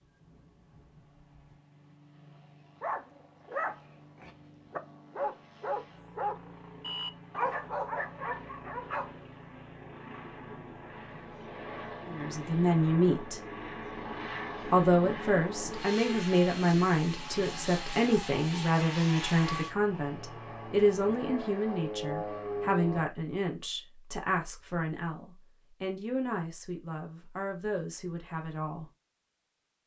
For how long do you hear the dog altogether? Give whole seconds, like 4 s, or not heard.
6 s.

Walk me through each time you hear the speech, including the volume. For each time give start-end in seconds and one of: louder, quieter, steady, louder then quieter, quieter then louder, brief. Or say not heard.
12.1-13.4 brief
14.7-28.9 quieter.